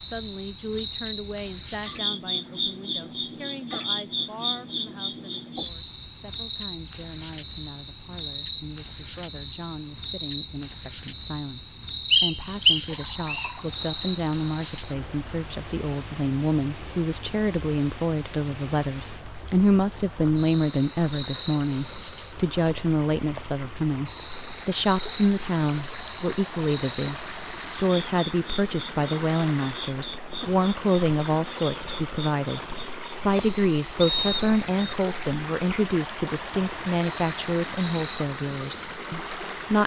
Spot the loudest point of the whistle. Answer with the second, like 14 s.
13 s.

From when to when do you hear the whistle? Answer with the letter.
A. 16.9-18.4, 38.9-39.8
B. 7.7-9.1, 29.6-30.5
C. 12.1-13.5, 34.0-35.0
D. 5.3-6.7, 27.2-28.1
C.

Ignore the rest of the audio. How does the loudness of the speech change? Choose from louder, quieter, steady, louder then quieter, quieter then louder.
louder.